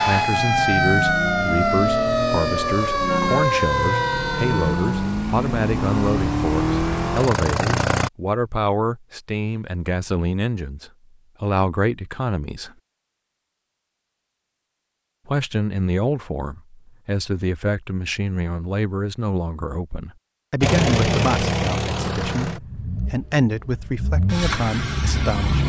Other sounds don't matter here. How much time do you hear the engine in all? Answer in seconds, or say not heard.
13 s.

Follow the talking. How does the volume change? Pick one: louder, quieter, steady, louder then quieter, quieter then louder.
steady.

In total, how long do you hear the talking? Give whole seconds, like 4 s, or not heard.
23 s.